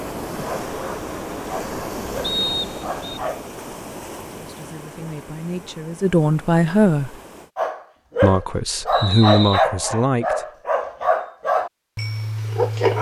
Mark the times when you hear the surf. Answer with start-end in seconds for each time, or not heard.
0.0-7.5.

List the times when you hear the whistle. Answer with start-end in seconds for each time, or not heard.
2.2-3.1, 8.9-9.7.